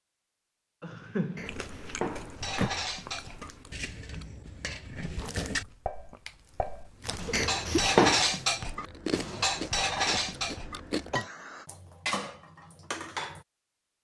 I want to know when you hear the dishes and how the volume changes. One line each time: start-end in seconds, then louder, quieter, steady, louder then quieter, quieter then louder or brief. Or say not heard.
2.4-13.4 louder then quieter.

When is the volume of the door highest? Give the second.
8 s.